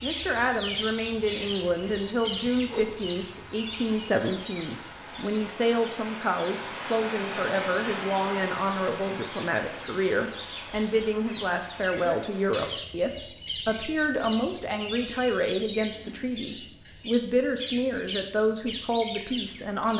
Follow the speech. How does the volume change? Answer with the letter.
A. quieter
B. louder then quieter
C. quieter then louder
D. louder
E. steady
E.